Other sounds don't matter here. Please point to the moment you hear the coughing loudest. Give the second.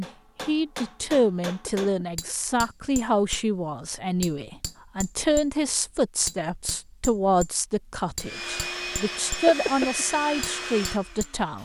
10 s.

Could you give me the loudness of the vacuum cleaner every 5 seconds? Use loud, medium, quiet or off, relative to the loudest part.
off, loud, loud.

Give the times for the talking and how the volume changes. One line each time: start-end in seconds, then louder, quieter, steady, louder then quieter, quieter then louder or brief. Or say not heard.
0.0-11.6 steady.